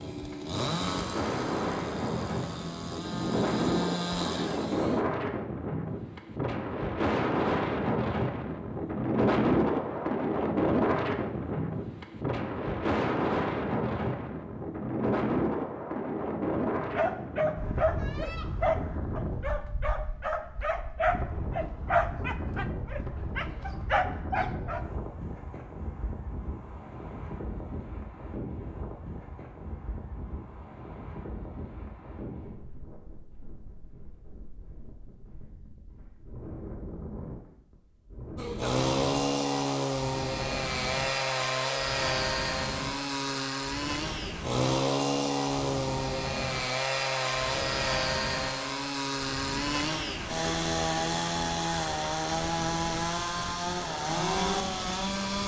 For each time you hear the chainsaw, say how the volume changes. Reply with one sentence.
The chainsaw can be heard from 0.0 to 5.0 s, getting quieter then louder; and from 38.4 to 55.4 s, at a steady volume.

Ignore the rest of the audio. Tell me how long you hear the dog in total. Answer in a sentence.
The dog can be heard for 8 seconds in total.